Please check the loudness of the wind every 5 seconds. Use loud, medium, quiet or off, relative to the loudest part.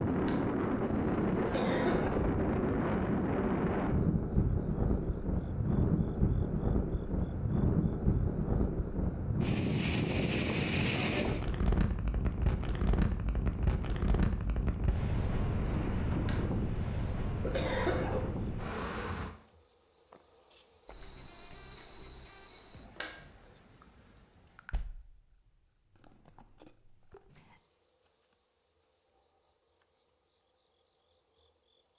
loud, loud, loud, medium, off, off, off.